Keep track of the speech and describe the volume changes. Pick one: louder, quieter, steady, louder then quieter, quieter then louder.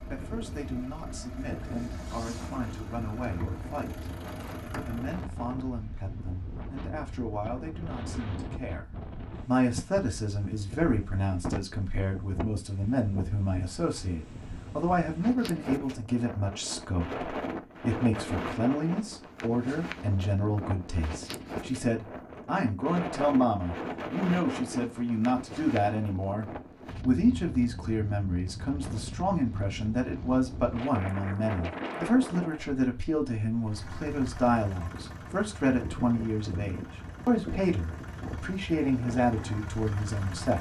louder.